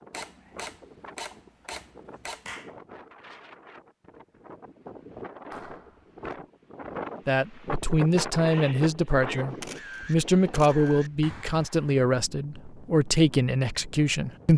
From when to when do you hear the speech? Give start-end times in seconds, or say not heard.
7.2-14.5.